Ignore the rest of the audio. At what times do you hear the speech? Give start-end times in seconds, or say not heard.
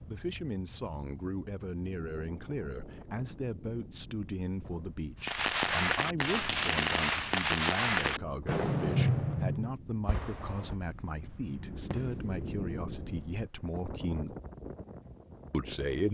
0.0-14.3, 15.5-16.1.